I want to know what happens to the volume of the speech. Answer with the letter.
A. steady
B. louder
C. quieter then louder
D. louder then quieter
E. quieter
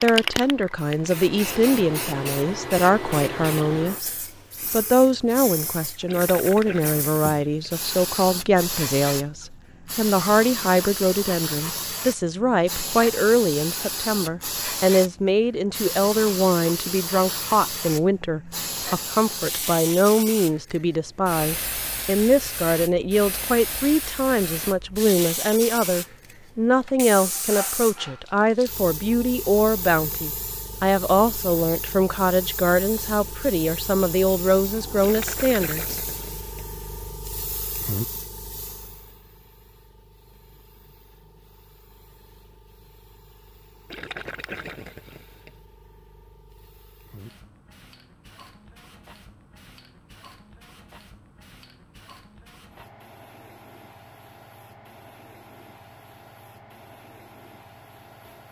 A.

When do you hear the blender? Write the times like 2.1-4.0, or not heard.
not heard.